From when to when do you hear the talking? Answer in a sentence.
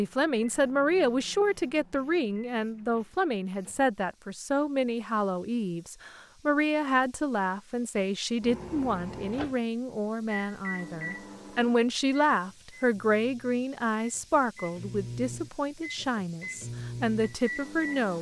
You can hear the talking from 0.0 to 18.1 s.